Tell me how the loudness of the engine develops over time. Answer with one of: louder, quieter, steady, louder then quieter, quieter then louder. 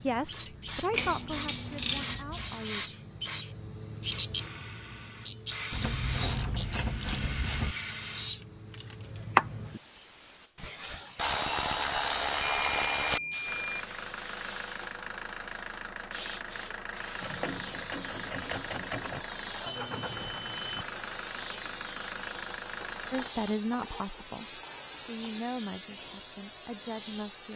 steady.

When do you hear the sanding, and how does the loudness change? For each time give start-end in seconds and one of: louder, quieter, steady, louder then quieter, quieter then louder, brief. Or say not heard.
not heard.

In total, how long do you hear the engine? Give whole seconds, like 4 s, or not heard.
10 s.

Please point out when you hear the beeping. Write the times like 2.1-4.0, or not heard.
1.9-2.6, 12.4-13.7, 19.6-20.9.